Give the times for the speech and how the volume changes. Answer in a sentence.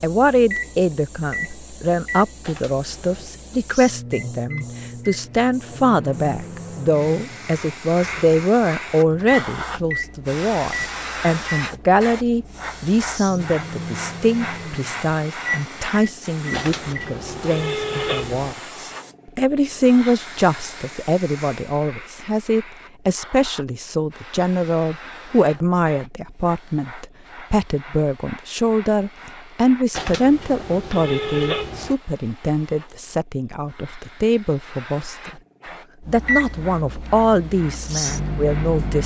The speech can be heard from 0.0 to 35.3 s, at a steady volume; and briefly from 36.0 to 39.0 s.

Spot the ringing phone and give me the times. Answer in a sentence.
The ringing phone can be heard from 2.4 to 3.4 s, from 16.5 to 18.6 s and from 29.9 to 31.9 s.